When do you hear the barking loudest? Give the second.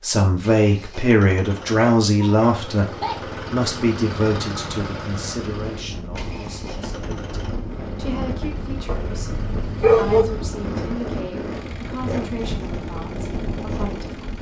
10 s.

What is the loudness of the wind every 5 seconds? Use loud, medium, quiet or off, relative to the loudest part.
off, loud, loud.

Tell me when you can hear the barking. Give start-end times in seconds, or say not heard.
1.8-3.2, 8.8-10.2.